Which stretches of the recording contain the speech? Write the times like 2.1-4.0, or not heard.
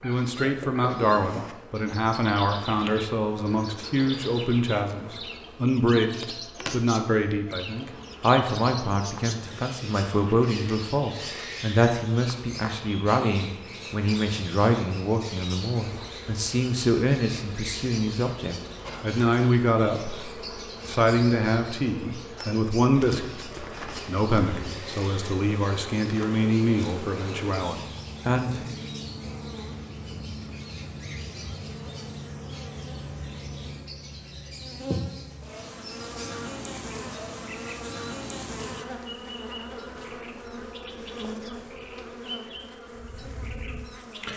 0.0-20.2, 20.9-28.8.